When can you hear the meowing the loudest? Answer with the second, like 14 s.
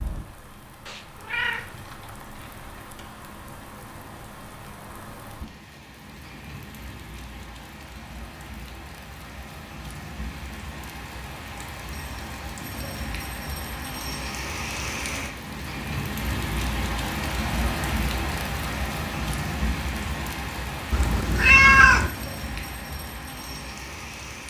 22 s.